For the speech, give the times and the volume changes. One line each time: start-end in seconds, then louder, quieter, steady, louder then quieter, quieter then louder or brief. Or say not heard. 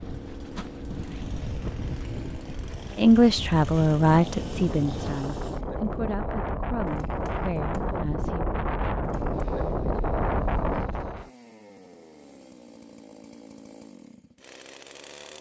3.0-8.4 quieter.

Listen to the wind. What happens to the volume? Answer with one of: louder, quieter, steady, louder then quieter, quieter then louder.
louder.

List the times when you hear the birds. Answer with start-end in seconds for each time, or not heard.
not heard.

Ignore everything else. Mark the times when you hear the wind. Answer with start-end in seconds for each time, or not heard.
0.0-11.3.